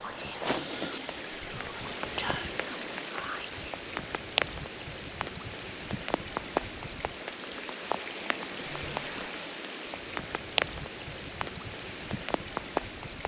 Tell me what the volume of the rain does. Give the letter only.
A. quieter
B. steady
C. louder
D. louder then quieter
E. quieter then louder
B.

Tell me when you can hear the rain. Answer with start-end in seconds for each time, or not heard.
0.0-13.2.